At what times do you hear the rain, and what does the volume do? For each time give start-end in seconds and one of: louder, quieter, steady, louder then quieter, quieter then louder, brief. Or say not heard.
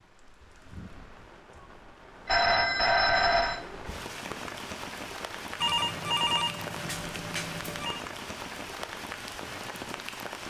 0.0-10.4 louder.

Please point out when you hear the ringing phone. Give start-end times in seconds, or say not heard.
2.2-3.6, 5.6-8.0.